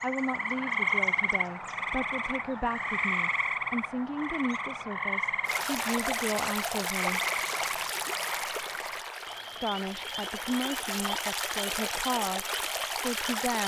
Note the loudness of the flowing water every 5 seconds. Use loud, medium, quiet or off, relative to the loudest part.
off, loud, loud.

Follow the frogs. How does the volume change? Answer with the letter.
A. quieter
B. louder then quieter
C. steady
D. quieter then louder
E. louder
A.